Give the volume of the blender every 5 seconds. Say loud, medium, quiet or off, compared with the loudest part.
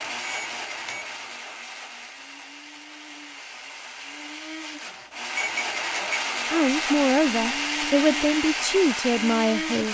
medium, loud.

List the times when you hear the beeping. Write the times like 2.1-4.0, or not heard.
0.0-1.1, 5.3-6.2.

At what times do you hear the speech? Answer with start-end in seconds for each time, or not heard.
6.5-9.9.